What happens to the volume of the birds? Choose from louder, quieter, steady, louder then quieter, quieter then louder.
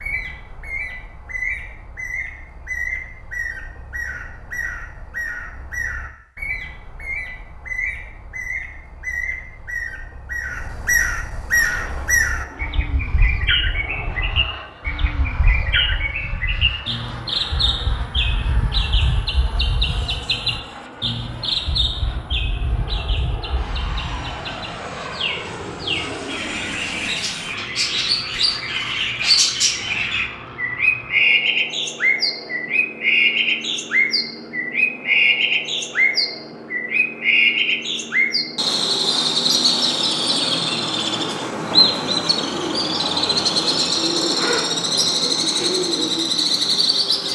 louder.